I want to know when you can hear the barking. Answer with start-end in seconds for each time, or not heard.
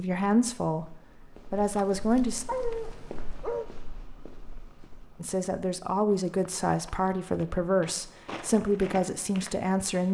1.6-3.6.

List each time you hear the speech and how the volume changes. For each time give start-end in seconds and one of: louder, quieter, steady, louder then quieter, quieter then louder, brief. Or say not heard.
0.0-2.5 brief
5.2-10.0 steady.